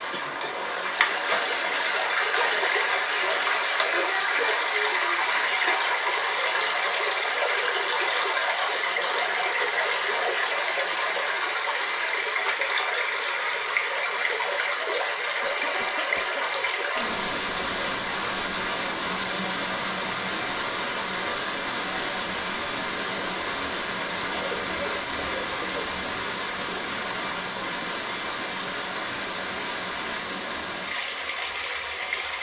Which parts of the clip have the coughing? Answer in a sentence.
You can hear the coughing from 0.1 to 0.6 s, from 15.4 to 16.7 s and from 24.4 to 25.8 s.